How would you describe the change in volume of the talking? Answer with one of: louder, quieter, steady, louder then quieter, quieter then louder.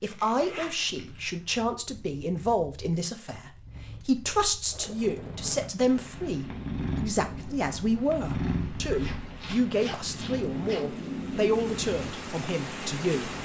steady.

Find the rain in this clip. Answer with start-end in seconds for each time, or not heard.
4.7-13.4.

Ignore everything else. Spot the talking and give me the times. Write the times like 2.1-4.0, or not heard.
0.0-13.3.